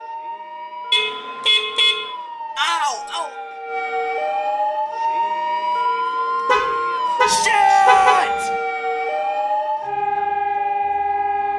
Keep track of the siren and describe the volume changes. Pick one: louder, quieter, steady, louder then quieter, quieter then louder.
louder.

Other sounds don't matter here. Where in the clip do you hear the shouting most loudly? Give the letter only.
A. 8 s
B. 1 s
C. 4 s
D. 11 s
A.